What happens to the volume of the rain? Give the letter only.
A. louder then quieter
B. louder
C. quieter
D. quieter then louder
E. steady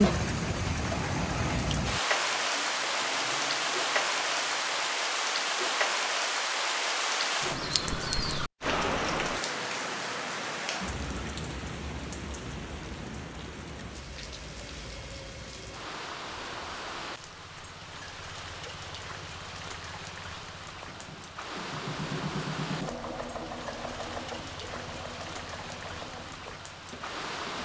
C.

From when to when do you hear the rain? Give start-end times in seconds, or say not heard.
0.0-27.5.